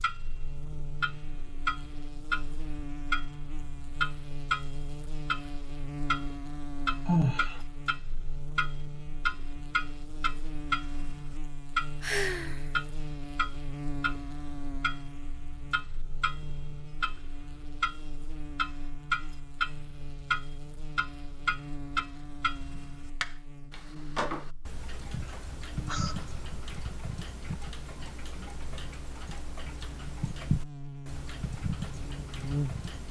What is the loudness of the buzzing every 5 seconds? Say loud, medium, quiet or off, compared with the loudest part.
medium, loud, loud, medium, medium, medium, loud.